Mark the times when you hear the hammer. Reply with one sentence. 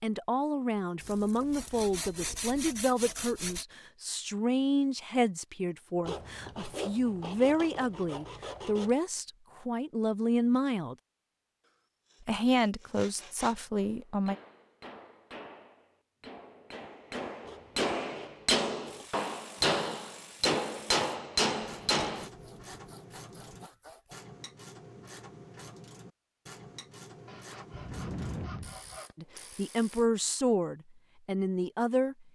The hammer can be heard from 13.8 to 22.3 s.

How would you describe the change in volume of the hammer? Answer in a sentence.
The loudness of the hammer goes up.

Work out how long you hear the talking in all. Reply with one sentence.
The talking can be heard for 16 seconds in total.